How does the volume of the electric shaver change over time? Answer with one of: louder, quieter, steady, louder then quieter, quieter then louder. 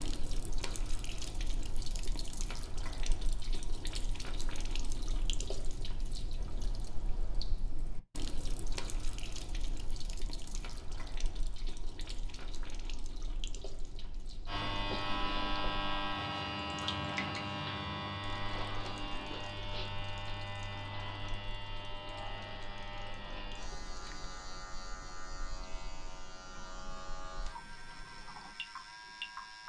quieter.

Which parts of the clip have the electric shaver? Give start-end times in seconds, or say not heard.
14.4-29.6.